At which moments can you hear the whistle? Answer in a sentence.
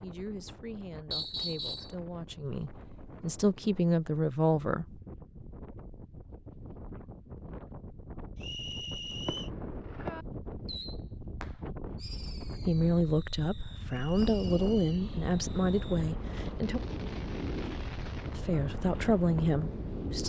You can hear the whistle from 1.1 to 1.9 s, from 8.4 to 9.5 s and from 13.8 to 15.1 s.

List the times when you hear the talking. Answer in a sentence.
The talking can be heard from 0.0 to 5.0 s, from 12.7 to 16.8 s and from 18.3 to 20.2 s.